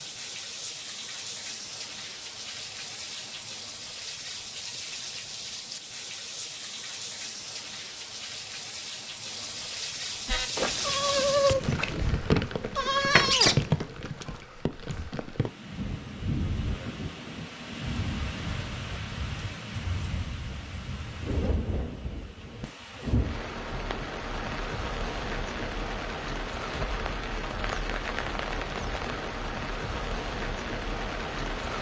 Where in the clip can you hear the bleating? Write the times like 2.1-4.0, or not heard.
10.2-14.3.